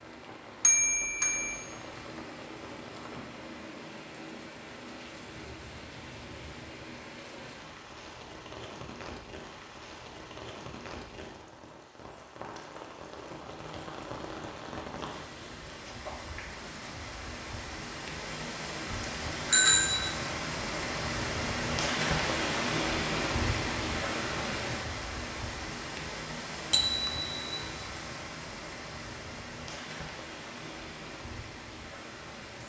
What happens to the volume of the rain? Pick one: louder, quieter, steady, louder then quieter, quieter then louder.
louder then quieter.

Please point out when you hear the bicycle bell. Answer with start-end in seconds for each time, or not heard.
0.6-1.6, 18.3-20.1, 26.7-27.6.